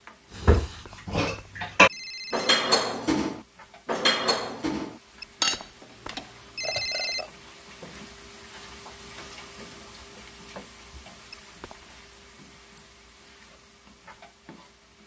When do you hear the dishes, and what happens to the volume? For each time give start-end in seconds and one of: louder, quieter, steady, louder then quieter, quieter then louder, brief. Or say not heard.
0.3-7.3 quieter.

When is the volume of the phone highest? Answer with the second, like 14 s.
7 s.